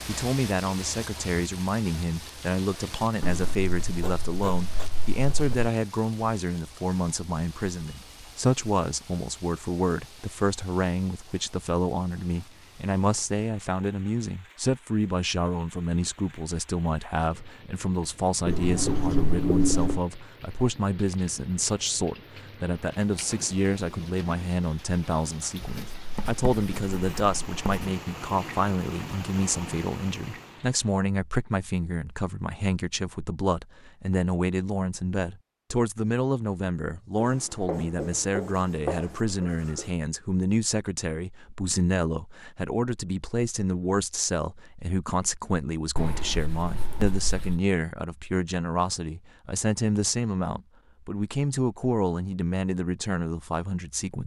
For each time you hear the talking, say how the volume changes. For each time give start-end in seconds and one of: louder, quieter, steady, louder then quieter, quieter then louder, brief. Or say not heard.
0.1-54.2 steady.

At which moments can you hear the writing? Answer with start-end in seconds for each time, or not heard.
3.2-5.7, 18.4-20.0, 25.6-27.9, 37.2-39.9, 46.0-47.6.